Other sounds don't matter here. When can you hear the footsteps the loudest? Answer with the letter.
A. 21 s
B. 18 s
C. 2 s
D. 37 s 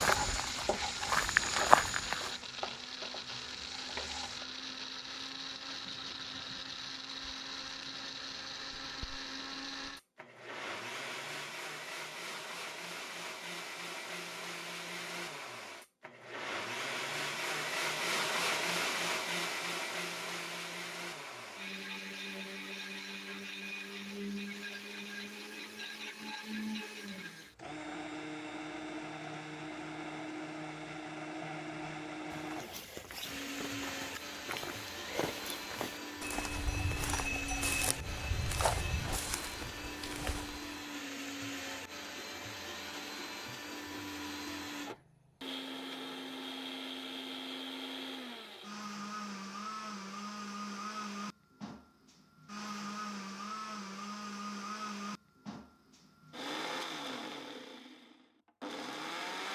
C.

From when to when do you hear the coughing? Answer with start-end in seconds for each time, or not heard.
not heard.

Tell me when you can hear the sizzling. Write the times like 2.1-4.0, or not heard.
0.0-4.5.